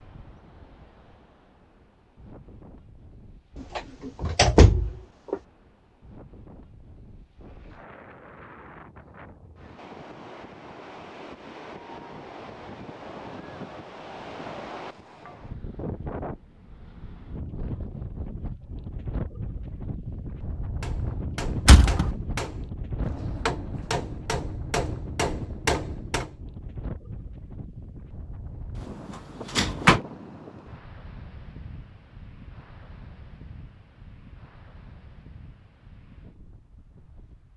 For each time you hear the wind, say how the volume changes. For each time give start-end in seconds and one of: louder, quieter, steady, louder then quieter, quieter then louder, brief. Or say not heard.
0.0-37.5 louder then quieter.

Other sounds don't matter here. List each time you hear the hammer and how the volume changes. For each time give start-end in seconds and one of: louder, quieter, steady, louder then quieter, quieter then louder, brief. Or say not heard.
20.8-26.3 louder.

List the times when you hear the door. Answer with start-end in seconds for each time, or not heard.
3.8-5.3, 21.6-22.1, 28.8-30.0.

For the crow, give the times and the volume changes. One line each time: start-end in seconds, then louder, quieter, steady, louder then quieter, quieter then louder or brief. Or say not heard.
not heard.